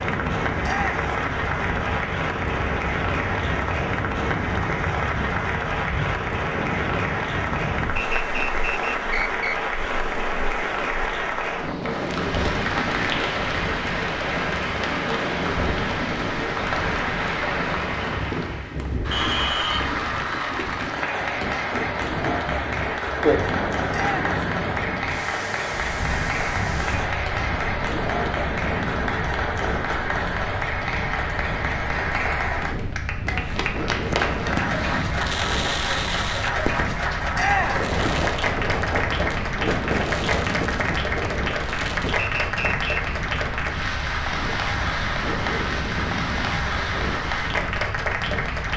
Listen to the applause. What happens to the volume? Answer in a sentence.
The loudness of the applause stays about the same.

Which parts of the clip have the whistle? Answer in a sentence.
You can hear the whistle from 8.0 to 9.6 s, from 19.1 to 19.9 s and from 42.1 to 43.0 s.